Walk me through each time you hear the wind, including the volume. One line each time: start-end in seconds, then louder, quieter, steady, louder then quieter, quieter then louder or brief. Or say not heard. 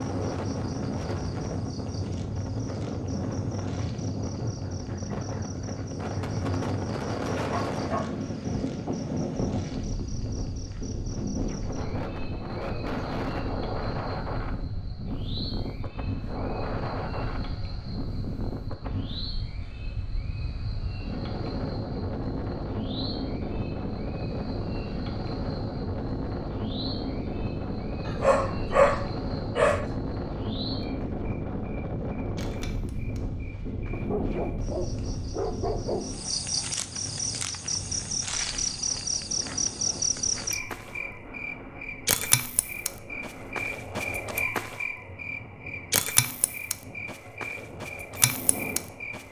0.0-49.2 quieter.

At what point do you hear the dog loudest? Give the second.
29 s.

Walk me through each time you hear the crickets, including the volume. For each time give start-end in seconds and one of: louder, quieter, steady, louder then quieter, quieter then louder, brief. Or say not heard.
0.0-49.2 louder.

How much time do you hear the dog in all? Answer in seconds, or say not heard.
6 s.